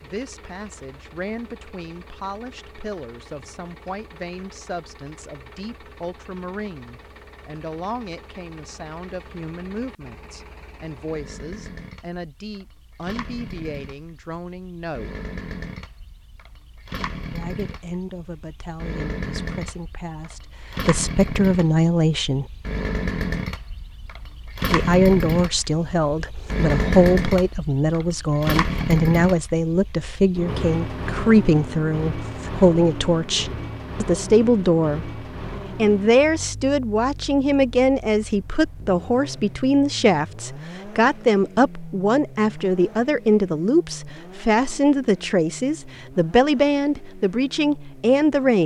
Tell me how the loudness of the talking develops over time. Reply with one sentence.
The loudness of the talking goes up.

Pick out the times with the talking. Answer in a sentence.
The talking can be heard from 0.0 to 15.2 s, from 17.3 to 22.4 s and from 24.7 to 48.6 s.